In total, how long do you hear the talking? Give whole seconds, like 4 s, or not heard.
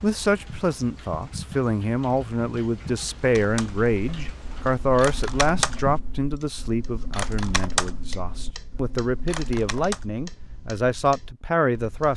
12 s.